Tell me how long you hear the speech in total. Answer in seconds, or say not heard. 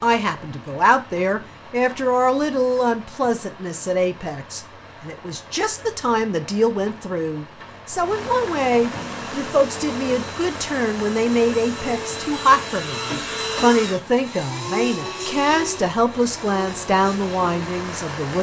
18 s.